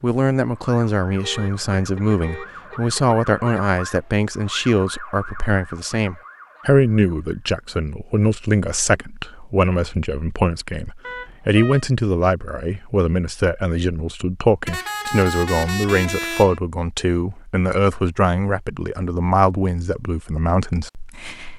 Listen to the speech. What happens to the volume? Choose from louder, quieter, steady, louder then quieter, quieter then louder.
steady.